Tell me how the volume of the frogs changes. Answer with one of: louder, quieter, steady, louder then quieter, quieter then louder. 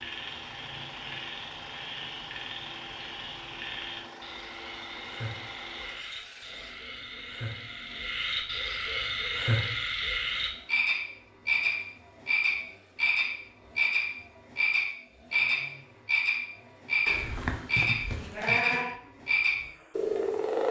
louder.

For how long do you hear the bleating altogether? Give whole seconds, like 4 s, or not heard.
2 s.